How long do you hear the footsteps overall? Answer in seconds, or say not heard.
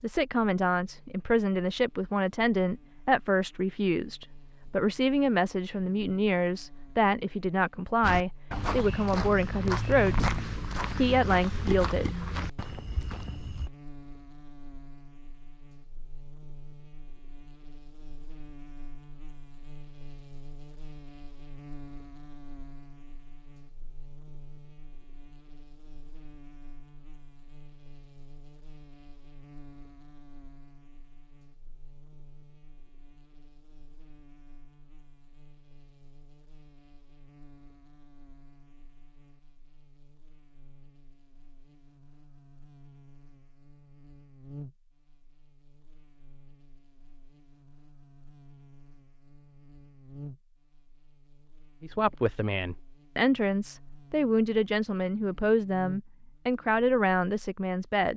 6 s.